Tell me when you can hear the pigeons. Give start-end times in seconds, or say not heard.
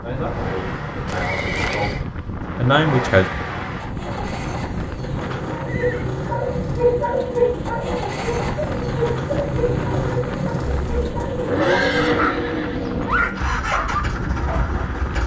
not heard.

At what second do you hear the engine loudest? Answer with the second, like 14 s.
12 s.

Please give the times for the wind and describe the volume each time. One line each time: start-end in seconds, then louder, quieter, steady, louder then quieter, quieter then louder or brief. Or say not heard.
0.0-15.2 steady.